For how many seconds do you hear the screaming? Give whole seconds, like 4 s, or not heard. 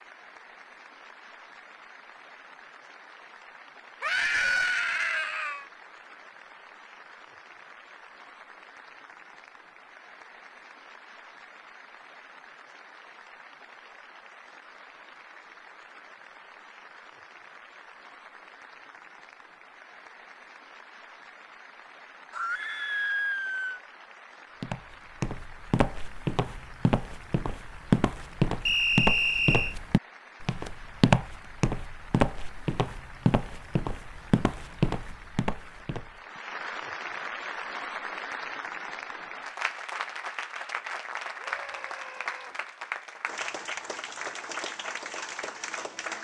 4 s.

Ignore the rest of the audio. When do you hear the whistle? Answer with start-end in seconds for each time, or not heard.
28.6-29.8.